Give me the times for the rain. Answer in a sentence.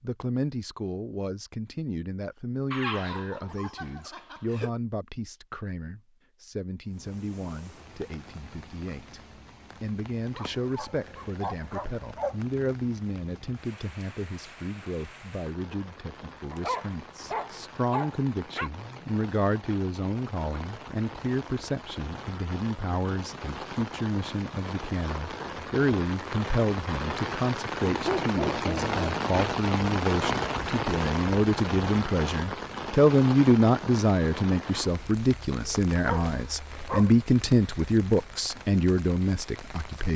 You can hear the rain from 6.8 to 40.1 s.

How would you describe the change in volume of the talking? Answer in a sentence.
The volume of the talking goes up.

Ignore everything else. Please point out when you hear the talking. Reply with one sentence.
You can hear the talking from 0.0 to 9.2 s and from 9.8 to 40.1 s.